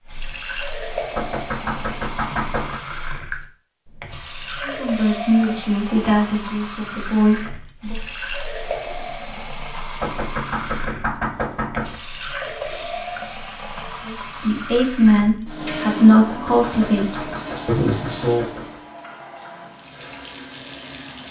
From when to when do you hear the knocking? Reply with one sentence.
You can hear the knocking from 1.1 to 2.8 s, from 10.0 to 12.0 s and from 16.1 to 18.8 s.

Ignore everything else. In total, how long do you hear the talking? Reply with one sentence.
The talking can be heard for 8 seconds in total.